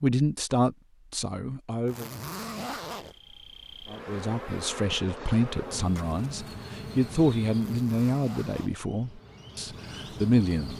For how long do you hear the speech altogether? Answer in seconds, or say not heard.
9 s.